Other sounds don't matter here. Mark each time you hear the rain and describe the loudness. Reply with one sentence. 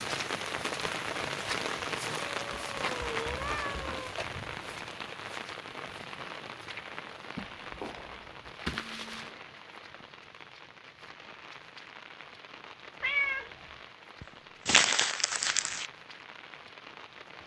You can hear the rain from 0.0 to 17.4 s, getting quieter.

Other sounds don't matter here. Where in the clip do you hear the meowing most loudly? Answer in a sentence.
The loudest moment of the meowing is at 13 seconds.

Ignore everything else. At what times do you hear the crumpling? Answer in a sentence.
You can hear the crumpling from 2.0 to 4.0 s, from 8.7 to 9.3 s and from 14.2 to 15.8 s.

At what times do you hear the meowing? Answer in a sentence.
The meowing can be heard from 2.4 to 4.2 s, from 7.3 to 8.6 s and from 13.0 to 13.5 s.